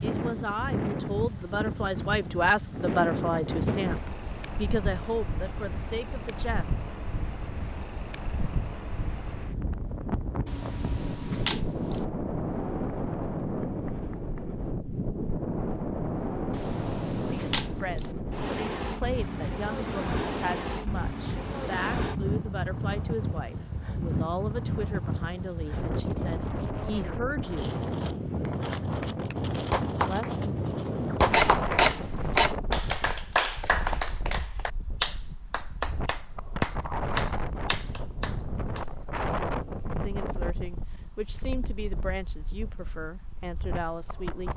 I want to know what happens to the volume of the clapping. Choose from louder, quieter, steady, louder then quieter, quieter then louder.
quieter.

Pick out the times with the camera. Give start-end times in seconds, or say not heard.
10.4-12.0, 16.5-18.1, 31.3-32.5.